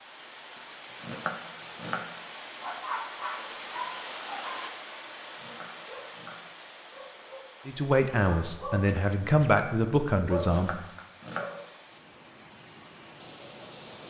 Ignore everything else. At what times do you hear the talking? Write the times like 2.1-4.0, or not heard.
7.7-10.7.